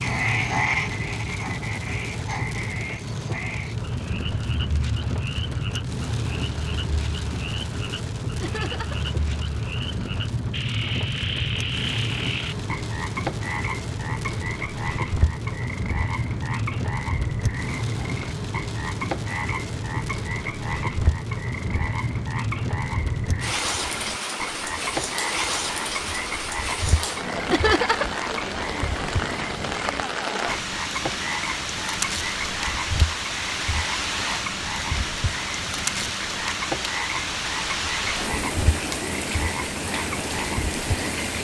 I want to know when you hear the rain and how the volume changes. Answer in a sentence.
The rain can be heard from 0.0 to 41.4 s, at a steady volume.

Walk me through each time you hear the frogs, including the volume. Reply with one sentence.
The frogs can be heard from 0.0 to 41.4 s, at a steady volume.